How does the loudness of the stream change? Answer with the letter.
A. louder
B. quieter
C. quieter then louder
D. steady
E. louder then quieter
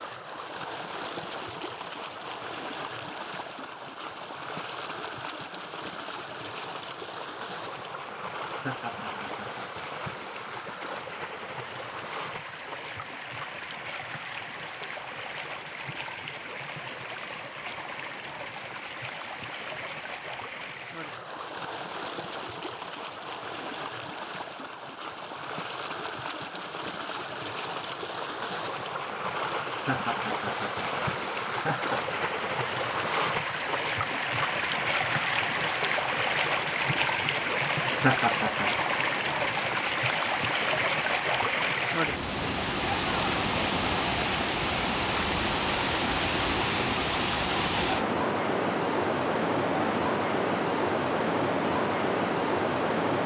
A.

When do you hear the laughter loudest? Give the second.
38 s.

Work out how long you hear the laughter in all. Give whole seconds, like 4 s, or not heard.
4 s.